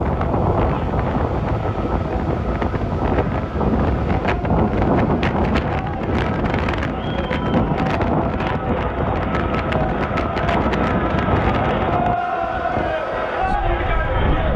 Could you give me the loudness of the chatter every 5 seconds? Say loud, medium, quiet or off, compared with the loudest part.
medium, medium, loud.